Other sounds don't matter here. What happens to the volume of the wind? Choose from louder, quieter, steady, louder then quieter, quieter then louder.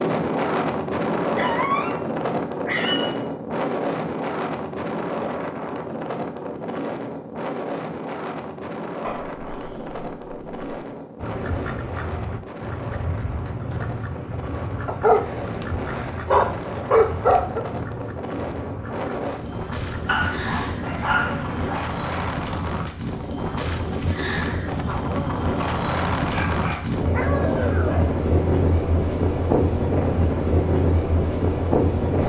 quieter then louder.